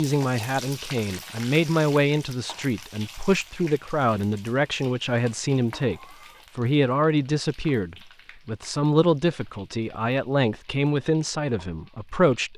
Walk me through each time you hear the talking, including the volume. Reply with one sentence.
You can hear the talking from 0.0 to 12.5 s, at a steady volume.